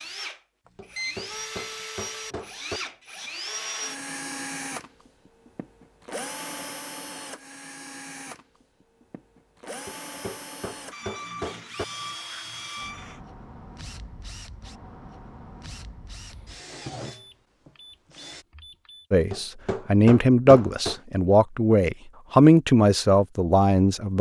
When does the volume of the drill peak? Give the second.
4 s.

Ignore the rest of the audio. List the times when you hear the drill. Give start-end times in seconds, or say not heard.
0.0-18.4.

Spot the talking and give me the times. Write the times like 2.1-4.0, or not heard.
19.1-24.1.